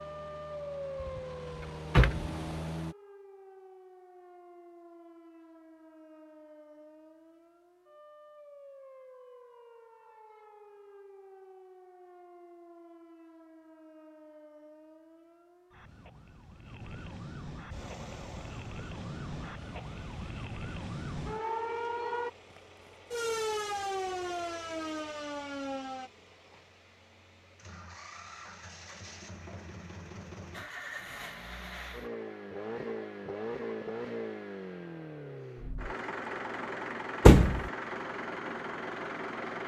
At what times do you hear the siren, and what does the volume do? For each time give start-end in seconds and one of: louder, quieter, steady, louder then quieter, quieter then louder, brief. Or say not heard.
0.0-26.1 quieter then louder.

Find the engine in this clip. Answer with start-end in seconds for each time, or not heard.
0.0-3.0, 17.6-39.6.